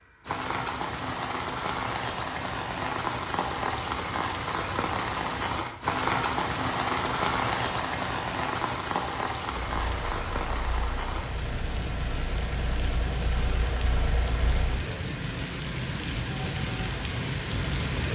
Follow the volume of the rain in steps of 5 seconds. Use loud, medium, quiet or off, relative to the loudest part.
loud, loud, medium, loud.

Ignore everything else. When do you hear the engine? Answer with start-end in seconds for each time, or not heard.
9.5-14.8.